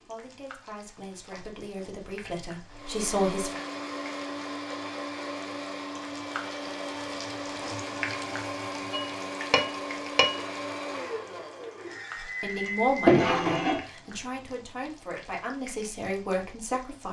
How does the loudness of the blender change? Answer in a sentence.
The volume of the blender stays about the same.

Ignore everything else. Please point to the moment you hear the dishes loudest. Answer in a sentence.
The loudest moment of the dishes is at 13 seconds.